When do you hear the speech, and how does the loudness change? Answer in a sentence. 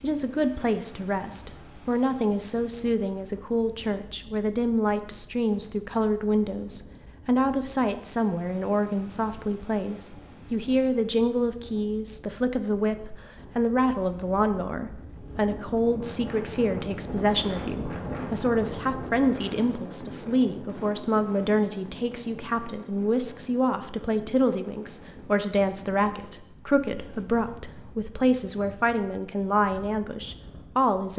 The speech can be heard from 0.0 to 31.1 s, at a steady volume.